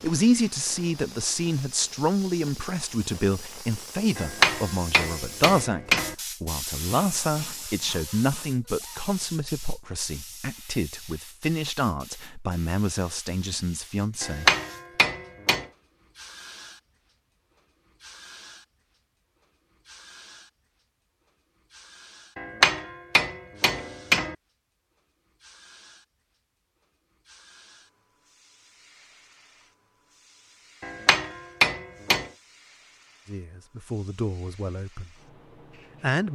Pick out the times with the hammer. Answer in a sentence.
You can hear the hammer from 4.2 to 6.2 s, from 14.2 to 15.7 s, from 22.4 to 24.4 s and from 30.8 to 32.3 s.